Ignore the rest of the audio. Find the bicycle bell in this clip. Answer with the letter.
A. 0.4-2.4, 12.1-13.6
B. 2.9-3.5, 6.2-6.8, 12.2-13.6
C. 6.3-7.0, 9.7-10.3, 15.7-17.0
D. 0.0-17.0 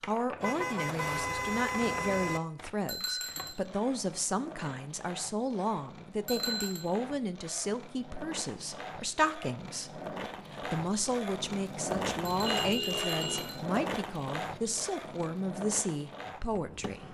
B.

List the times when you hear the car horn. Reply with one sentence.
You can hear the car horn from 0.4 to 2.4 s and from 12.1 to 13.6 s.